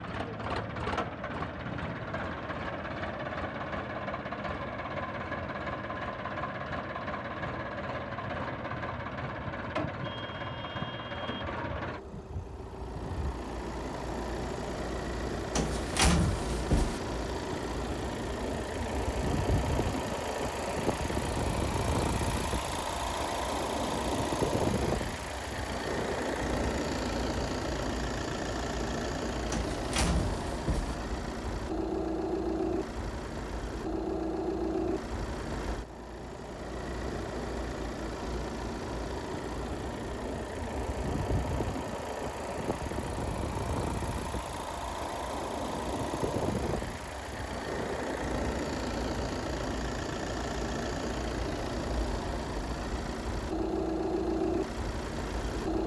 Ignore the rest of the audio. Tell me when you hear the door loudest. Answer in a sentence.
The loudest moment of the door is at 16 seconds.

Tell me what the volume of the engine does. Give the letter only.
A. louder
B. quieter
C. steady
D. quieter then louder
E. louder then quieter
C.